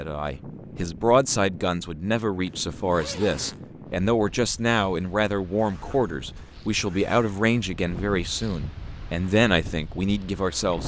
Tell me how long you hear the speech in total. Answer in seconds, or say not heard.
11 s.